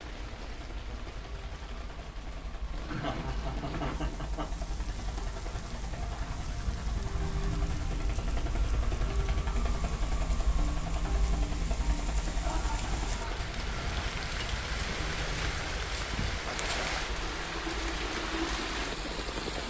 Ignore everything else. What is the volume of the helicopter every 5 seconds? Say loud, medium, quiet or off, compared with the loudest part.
medium, loud, loud, medium.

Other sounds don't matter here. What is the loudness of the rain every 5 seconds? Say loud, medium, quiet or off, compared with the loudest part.
quiet, quiet, medium, loud.